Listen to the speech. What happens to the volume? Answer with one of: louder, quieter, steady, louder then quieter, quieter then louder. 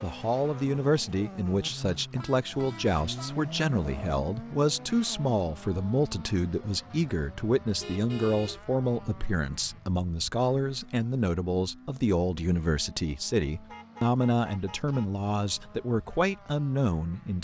steady.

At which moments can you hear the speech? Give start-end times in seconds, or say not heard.
0.0-17.3.